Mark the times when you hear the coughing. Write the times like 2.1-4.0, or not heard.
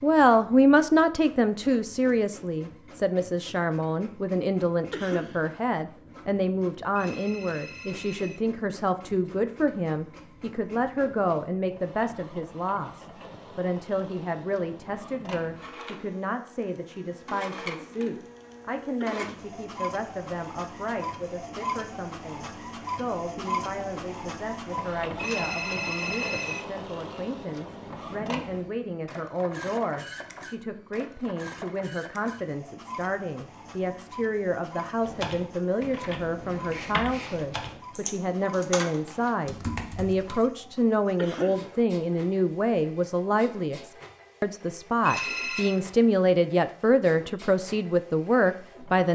4.9-5.5, 19.0-19.5, 41.1-41.7.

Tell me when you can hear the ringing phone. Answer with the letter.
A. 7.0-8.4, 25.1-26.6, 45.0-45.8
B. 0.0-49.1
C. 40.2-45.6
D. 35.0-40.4
A.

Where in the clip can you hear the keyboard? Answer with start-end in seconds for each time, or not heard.
35.0-40.4.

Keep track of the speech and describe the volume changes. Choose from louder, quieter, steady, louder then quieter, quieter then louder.
quieter then louder.